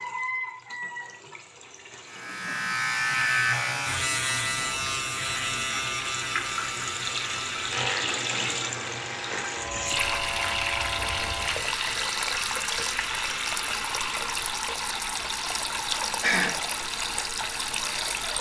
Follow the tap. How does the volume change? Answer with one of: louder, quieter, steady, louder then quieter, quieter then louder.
louder.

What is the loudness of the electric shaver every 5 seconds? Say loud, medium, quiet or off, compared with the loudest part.
loud, medium, medium, off.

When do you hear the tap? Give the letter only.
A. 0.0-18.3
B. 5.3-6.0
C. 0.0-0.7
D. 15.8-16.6
A.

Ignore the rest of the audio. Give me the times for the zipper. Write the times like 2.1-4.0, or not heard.
not heard.